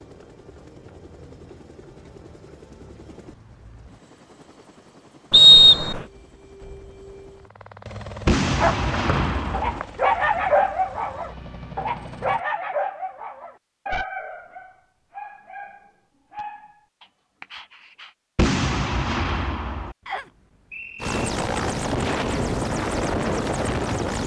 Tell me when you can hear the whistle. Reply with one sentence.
You can hear the whistle from 5.3 to 6.0 s, from 9.1 to 9.8 s and from 20.1 to 21.2 s.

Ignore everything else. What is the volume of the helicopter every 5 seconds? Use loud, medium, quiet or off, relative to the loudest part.
quiet, quiet, quiet, off, loud.